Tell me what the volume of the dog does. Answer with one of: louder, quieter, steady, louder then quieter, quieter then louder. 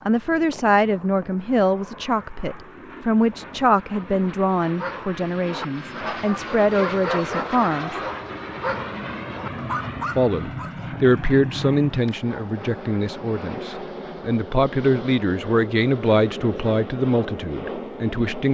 steady.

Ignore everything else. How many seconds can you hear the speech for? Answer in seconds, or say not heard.
16 s.